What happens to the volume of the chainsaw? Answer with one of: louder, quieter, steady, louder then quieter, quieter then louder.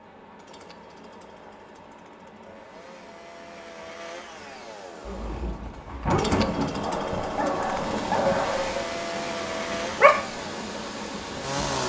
louder.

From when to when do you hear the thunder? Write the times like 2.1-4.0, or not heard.
5.8-8.4.